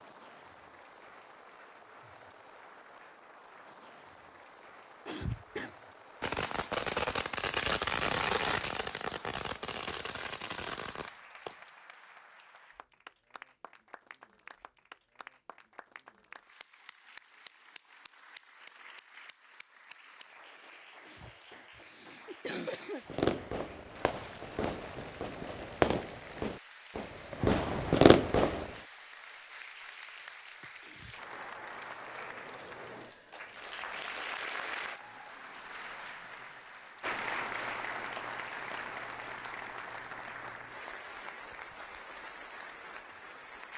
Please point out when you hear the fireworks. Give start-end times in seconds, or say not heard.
6.2-11.6, 23.1-28.7.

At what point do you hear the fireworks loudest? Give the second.
28 s.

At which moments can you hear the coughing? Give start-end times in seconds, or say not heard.
5.0-5.8, 21.0-23.2, 30.8-31.6.